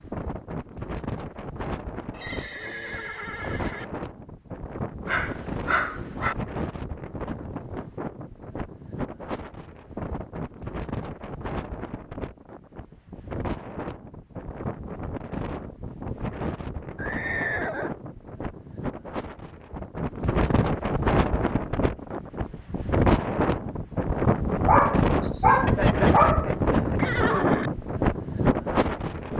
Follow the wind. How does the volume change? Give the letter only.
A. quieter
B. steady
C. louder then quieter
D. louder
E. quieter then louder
D.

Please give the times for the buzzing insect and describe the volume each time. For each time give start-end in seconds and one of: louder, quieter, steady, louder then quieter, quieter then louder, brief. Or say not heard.
not heard.